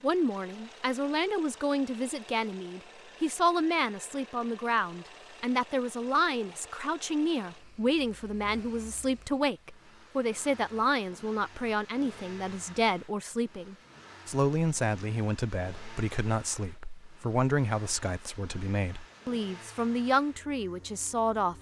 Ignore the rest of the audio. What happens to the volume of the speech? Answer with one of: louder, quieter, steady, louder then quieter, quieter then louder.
steady.